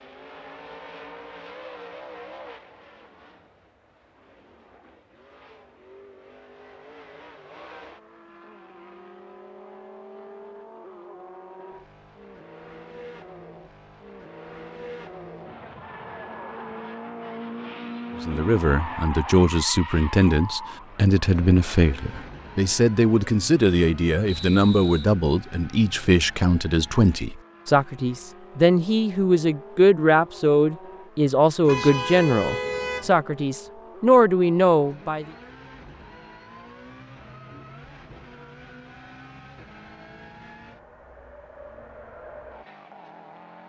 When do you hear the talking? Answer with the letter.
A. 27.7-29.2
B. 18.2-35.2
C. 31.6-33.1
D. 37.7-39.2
B.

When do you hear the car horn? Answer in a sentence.
The car horn can be heard from 31.6 to 33.1 s.